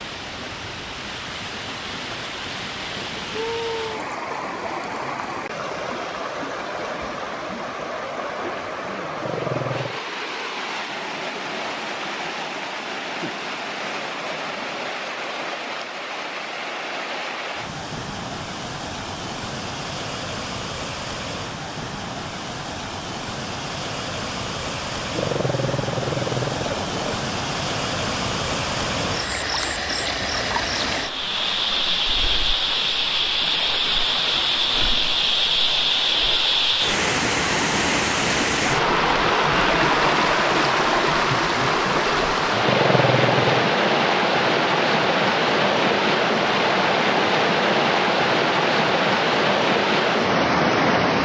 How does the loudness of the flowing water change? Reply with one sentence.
The volume of the flowing water goes up.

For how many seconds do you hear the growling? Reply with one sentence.
You can hear the growling for 4 seconds altogether.